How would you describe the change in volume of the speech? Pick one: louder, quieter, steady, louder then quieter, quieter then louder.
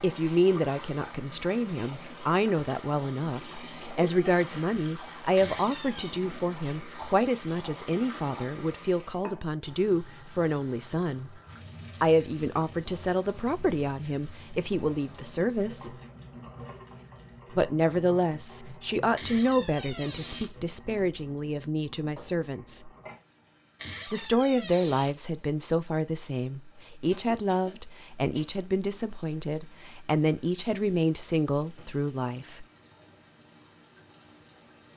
steady.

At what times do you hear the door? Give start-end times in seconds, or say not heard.
5.3-6.2, 19.1-20.5, 23.8-25.1.